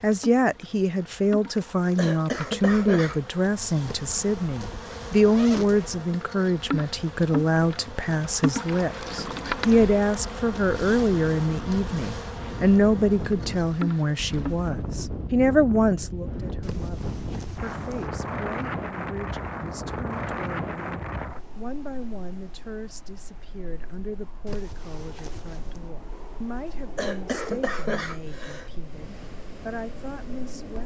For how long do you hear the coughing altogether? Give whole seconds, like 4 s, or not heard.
3 s.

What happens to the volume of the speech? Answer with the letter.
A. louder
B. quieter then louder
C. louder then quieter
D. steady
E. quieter
E.